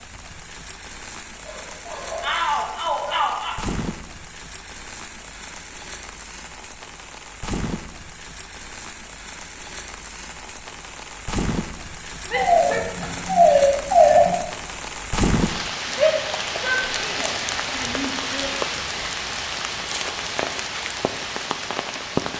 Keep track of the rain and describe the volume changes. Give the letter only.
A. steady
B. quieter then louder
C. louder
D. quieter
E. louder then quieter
C.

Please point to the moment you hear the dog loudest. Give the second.
14 s.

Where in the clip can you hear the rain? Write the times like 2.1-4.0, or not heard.
0.0-22.3.